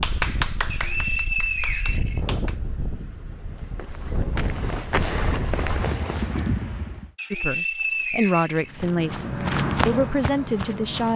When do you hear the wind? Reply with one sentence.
You can hear the wind from 0.0 to 7.1 s.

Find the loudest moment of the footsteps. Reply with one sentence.
The volume of the footsteps peaks at 10 seconds.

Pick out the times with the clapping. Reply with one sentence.
The clapping can be heard from 0.0 to 2.5 s.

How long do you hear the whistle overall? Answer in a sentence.
The whistle can be heard for 3 seconds in total.